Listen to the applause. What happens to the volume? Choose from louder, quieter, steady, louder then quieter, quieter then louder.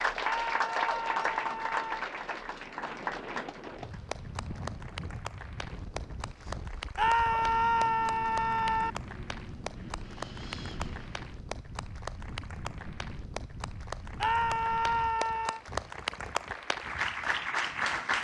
quieter then louder.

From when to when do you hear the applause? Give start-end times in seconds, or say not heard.
0.0-18.1.